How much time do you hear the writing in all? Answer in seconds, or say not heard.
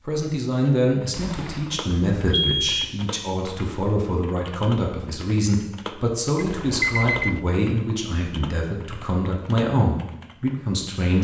not heard.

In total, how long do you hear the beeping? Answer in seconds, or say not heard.
3 s.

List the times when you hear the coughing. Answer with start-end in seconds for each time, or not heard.
not heard.